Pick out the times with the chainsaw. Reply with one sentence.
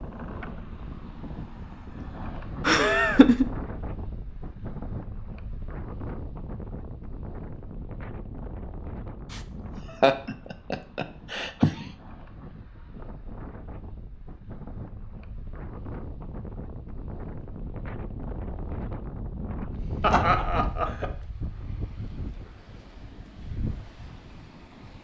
You can't hear the chainsaw here.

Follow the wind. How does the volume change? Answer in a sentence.
The loudness of the wind goes down, then up.